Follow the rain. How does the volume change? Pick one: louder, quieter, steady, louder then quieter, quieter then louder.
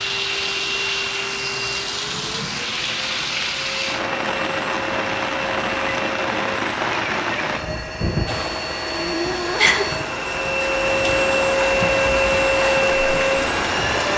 steady.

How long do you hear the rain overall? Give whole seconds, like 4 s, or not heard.
14 s.